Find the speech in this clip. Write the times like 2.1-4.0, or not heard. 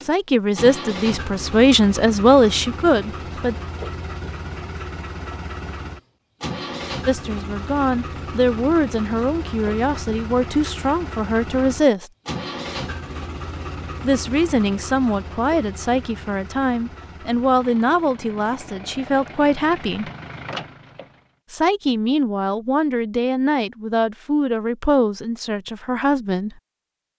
0.0-3.5, 7.0-12.1, 14.0-20.1, 21.5-26.6.